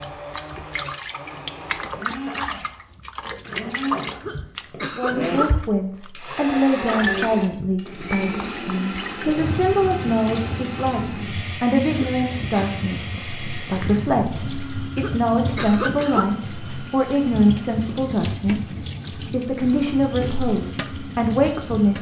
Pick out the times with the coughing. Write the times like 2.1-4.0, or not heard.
4.2-5.5, 11.9-12.7, 14.9-16.2.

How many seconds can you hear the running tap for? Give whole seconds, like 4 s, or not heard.
22 s.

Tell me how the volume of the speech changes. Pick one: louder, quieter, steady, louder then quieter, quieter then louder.
steady.